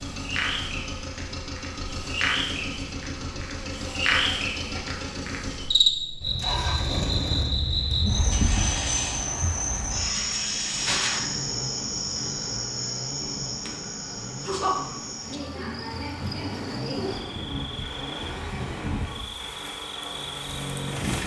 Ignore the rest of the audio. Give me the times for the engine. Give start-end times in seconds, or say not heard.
0.0-21.2.